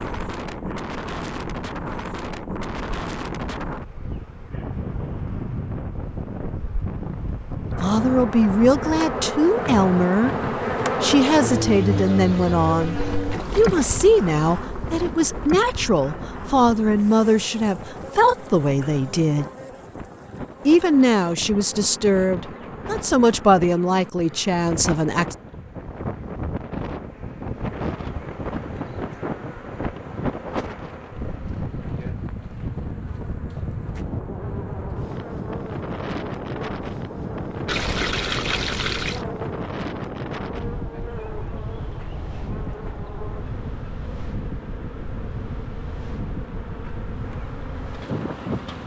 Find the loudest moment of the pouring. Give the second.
38 s.